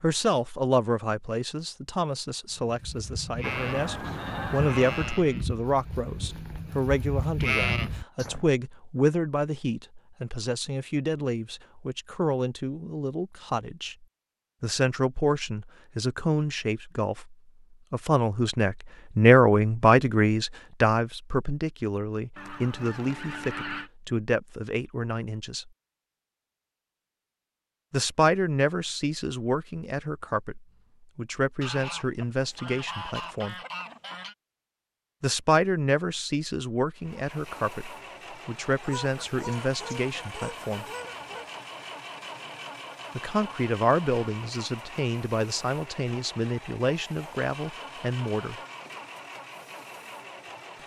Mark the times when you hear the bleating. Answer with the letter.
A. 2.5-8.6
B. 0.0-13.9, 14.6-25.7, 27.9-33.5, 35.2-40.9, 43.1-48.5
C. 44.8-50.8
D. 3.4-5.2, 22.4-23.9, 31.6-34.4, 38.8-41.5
A.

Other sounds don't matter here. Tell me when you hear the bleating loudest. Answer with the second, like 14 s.
8 s.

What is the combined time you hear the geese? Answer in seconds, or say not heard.
9 s.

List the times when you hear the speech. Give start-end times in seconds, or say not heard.
0.0-13.9, 14.6-25.7, 27.9-33.5, 35.2-40.9, 43.1-48.5.